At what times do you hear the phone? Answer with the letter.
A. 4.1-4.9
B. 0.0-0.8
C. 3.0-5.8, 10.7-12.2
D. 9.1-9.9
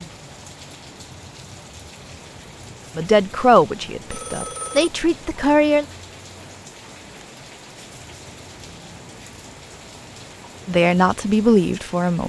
A.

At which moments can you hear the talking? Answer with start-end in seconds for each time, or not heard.
3.0-5.8, 10.7-12.2.